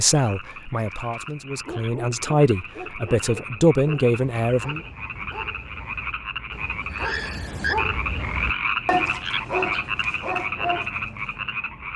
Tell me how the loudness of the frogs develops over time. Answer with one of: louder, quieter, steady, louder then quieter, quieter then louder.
louder.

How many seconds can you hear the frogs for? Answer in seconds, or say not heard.
12 s.